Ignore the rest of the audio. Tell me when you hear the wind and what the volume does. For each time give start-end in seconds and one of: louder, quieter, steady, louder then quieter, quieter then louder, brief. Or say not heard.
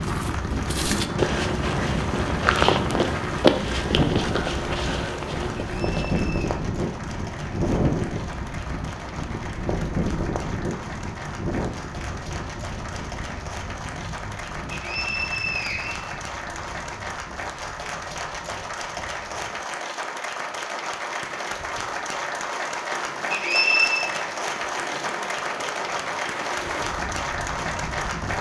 0.0-28.3 quieter then louder.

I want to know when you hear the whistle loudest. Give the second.
24 s.